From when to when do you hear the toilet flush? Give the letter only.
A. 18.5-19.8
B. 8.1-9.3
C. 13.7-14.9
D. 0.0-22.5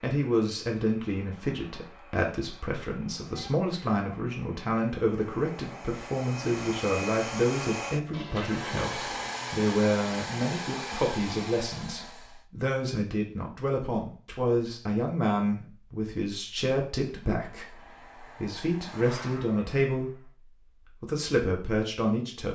B.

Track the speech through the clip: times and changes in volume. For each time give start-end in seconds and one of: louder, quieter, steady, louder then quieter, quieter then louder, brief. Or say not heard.
0.0-22.5 steady.